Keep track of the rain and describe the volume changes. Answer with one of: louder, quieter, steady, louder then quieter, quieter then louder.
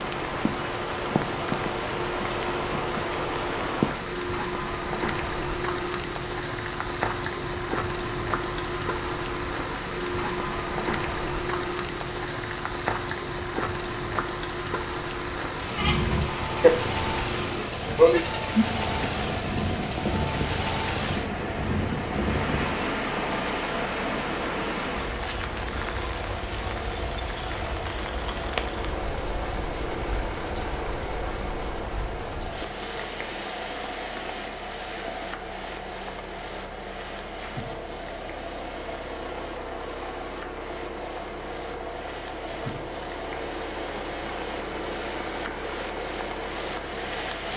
quieter.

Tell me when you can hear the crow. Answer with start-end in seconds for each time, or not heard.
not heard.